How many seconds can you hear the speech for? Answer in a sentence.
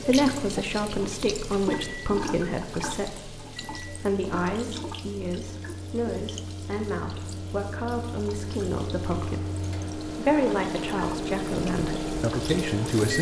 You can hear the speech for 13 seconds altogether.